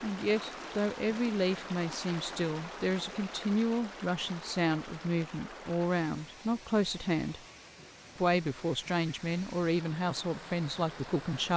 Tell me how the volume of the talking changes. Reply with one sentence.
The loudness of the talking stays about the same.